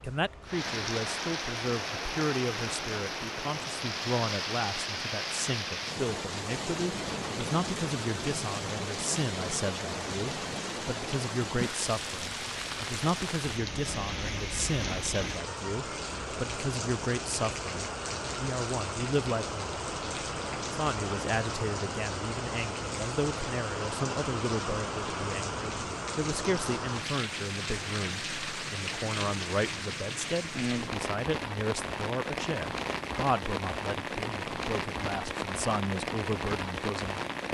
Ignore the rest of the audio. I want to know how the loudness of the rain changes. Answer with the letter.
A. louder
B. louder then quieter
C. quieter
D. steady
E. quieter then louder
D.